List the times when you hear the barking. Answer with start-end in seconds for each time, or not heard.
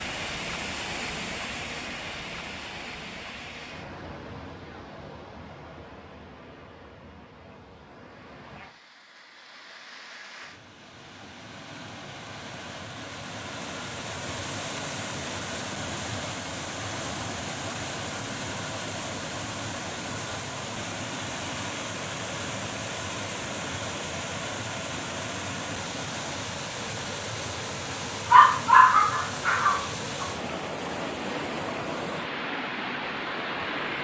28.2-30.2.